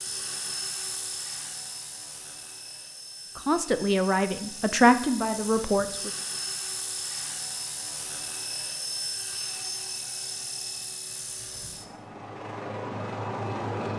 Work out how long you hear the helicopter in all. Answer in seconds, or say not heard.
14 s.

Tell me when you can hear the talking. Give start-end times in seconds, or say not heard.
3.4-6.1.